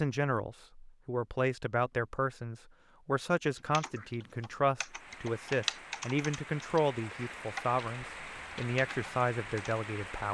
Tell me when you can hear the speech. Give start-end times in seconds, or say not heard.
0.0-10.2.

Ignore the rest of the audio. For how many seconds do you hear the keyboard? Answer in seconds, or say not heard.
6 s.